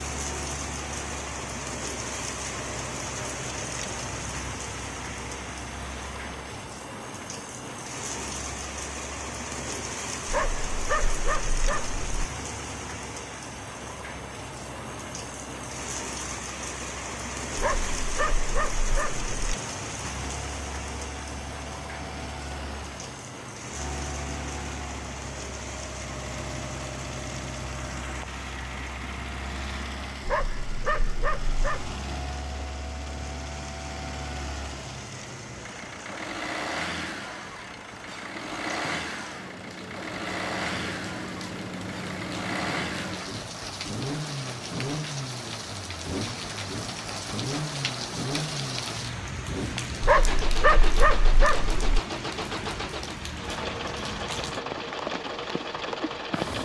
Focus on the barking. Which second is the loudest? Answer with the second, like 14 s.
50 s.